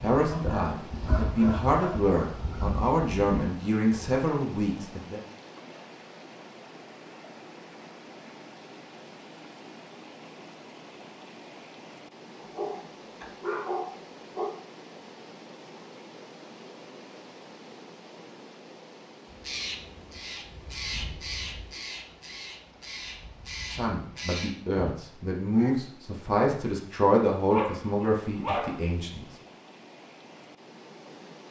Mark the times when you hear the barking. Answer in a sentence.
The barking can be heard from 0.3 to 2.0 s, from 12.4 to 14.5 s and from 27.5 to 28.8 s.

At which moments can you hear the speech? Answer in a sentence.
The speech can be heard from 0.0 to 5.2 s and from 23.7 to 29.2 s.